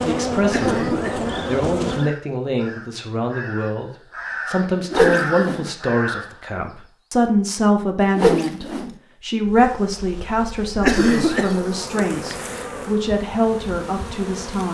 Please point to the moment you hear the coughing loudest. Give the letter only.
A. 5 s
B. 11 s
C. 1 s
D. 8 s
B.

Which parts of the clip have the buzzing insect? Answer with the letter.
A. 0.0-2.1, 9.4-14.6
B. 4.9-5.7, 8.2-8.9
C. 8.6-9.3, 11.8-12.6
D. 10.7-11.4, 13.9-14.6
A.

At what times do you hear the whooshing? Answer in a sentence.
You can hear the whooshing from 4.9 to 5.7 s and from 8.2 to 8.9 s.